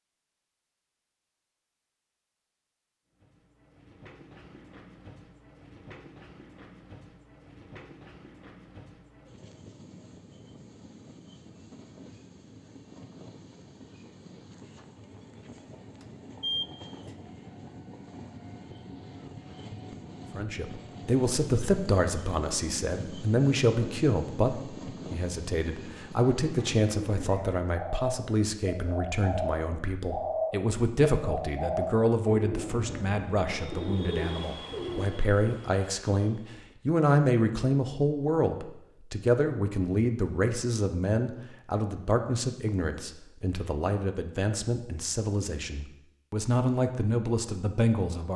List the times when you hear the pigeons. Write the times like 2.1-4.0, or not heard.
26.4-35.1.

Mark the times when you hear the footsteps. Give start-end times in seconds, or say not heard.
not heard.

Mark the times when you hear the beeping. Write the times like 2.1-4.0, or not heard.
16.0-16.7.